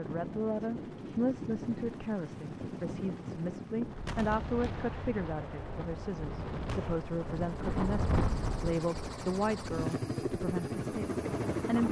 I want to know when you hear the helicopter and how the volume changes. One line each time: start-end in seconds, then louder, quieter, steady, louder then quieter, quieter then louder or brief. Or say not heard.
0.0-11.8 louder.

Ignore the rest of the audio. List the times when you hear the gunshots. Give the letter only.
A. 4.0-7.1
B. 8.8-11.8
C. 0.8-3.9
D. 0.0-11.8
A.